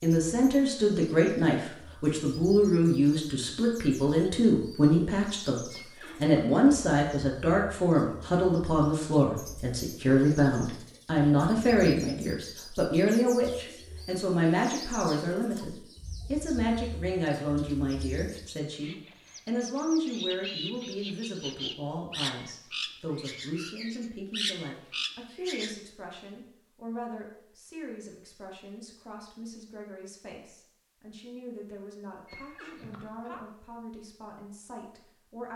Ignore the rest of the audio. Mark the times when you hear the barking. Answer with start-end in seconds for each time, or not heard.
not heard.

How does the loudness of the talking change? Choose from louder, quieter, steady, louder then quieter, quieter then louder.
quieter.